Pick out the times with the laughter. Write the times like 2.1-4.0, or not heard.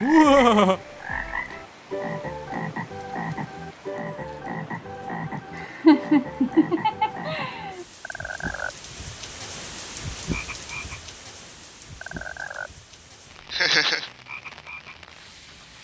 0.0-0.8, 5.5-7.8, 13.5-14.1.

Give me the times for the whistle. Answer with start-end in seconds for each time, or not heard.
not heard.